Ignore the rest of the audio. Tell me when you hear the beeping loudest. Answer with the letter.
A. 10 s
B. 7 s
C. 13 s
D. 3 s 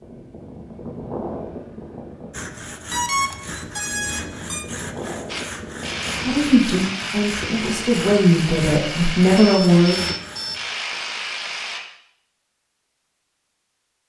D.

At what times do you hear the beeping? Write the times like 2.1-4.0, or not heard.
2.9-4.7, 9.3-10.6.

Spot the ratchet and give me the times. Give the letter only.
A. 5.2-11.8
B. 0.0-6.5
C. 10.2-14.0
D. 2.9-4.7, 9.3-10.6
A.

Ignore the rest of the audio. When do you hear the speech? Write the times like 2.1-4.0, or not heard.
6.2-10.1.